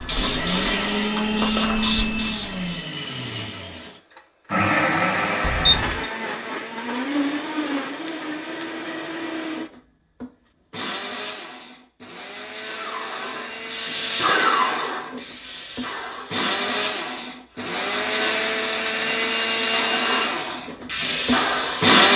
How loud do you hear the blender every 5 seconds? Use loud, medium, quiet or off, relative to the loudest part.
medium, medium, quiet, medium, loud.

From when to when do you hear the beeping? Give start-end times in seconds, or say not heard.
5.4-6.0.